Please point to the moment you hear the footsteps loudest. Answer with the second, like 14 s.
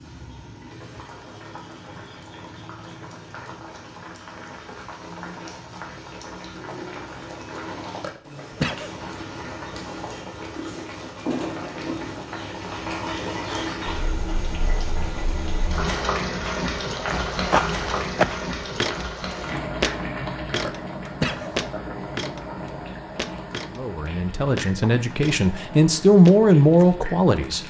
18 s.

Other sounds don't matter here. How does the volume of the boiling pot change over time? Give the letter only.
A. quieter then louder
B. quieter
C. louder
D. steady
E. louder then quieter
E.